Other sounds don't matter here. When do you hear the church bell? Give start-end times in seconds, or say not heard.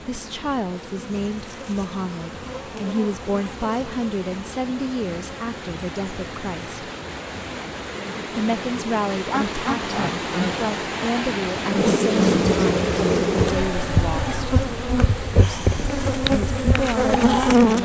not heard.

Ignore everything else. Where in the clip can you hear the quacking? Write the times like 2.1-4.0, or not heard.
9.1-10.7.